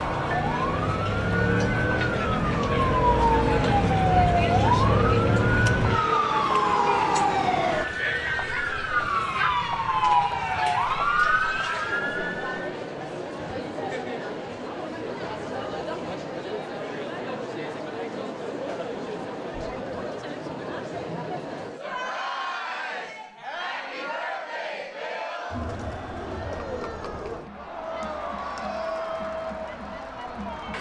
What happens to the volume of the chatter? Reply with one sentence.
The volume of the chatter stays about the same.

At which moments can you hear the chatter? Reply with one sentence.
The chatter can be heard from 0.0 to 30.7 s.